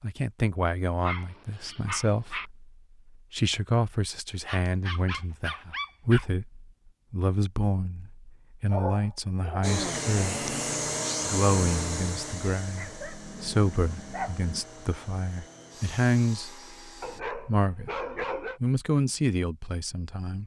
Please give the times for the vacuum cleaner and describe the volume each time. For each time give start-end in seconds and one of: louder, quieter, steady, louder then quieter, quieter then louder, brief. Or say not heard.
9.6-17.2 quieter.